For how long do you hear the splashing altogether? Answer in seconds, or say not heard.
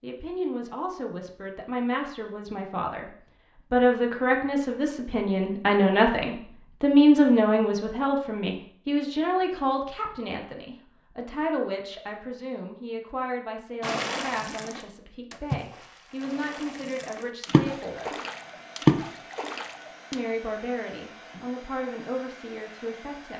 6 s.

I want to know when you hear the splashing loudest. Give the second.
19 s.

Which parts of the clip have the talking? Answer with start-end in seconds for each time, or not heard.
0.0-18.1, 20.1-23.3.